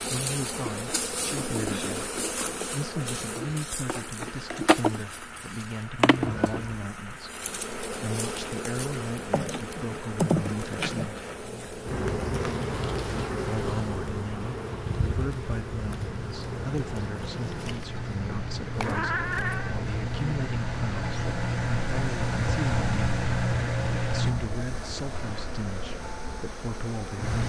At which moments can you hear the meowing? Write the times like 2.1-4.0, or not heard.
6.2-6.9, 18.8-19.8.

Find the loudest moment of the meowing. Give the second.
19 s.